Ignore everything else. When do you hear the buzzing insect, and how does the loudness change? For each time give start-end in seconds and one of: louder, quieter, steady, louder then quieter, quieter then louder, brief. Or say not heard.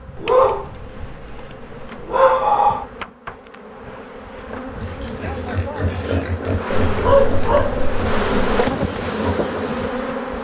0.0-10.3 louder.